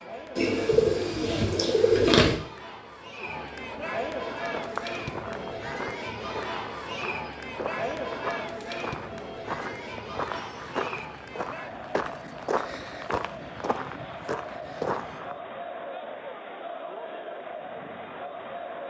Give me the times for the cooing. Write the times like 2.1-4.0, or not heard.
0.3-2.4.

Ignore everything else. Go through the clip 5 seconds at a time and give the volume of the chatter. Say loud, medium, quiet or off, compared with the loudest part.
loud, loud, medium, loud.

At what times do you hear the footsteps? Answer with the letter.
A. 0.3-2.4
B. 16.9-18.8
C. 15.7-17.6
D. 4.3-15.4
D.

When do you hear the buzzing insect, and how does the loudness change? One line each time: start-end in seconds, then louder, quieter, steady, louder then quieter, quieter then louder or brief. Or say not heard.
not heard.